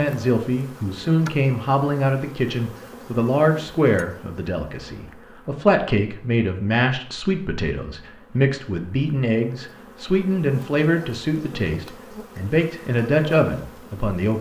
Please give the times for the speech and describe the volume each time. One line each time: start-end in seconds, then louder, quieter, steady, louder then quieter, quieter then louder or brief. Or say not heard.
0.0-14.3 steady.